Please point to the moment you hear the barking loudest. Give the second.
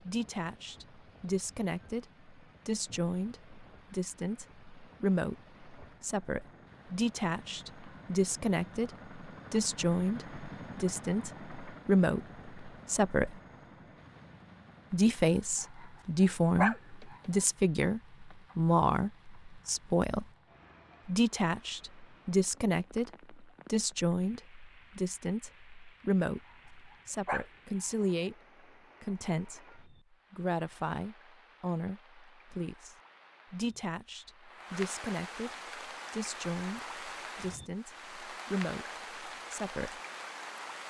17 s.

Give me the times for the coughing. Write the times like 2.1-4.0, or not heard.
not heard.